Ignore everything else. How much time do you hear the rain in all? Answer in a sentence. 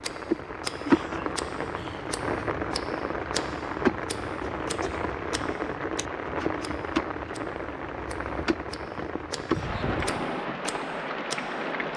The rain can be heard for 12 seconds in total.